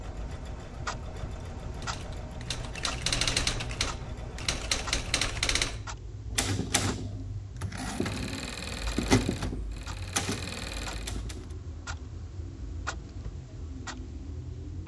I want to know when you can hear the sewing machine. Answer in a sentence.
You can hear the sewing machine from 0.0 to 5.5 s and from 7.8 to 11.2 s.